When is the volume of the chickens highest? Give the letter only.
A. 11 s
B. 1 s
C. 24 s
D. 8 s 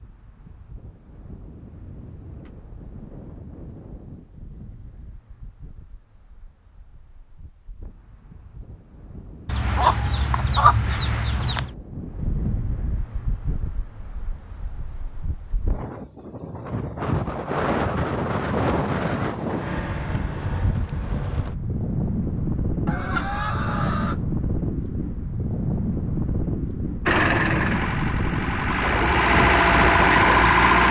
A.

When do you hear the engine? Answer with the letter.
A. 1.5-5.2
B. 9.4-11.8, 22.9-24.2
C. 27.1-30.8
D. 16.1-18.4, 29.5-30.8
C.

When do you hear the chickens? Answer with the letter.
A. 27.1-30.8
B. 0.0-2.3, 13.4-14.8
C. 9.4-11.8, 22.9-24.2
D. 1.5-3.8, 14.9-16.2
C.